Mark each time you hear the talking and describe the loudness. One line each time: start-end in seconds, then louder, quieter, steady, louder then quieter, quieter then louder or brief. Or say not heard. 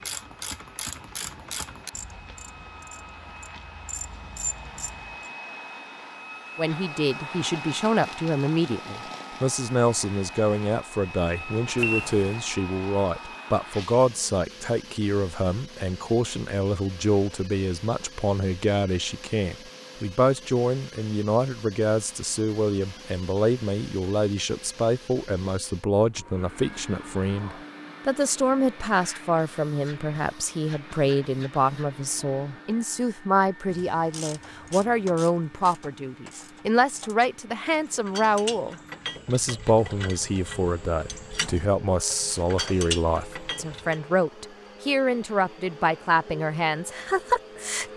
6.5-47.9 steady.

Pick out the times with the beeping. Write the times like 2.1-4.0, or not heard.
11.8-12.3.